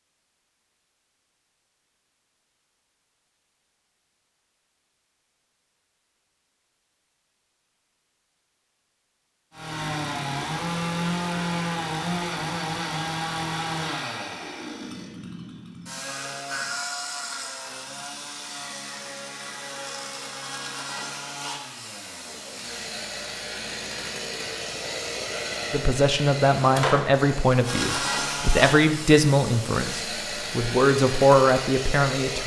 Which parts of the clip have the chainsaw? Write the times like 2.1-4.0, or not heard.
9.5-32.4.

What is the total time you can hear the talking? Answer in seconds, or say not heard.
7 s.